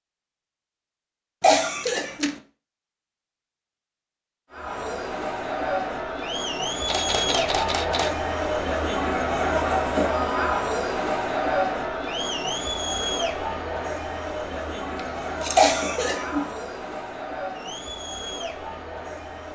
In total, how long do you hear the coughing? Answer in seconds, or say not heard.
2 s.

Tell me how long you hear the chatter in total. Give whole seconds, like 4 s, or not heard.
15 s.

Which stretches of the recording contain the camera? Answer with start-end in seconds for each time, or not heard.
1.8-2.4, 6.8-8.2, 14.9-15.8.